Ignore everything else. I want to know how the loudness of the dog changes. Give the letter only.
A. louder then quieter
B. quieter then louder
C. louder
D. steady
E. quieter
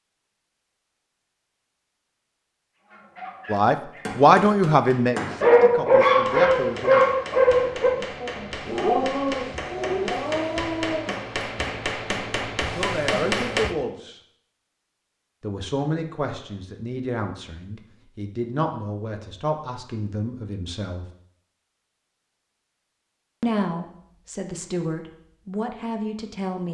A.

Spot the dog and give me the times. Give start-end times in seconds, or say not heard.
2.9-11.2.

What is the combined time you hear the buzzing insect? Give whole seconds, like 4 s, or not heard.
not heard.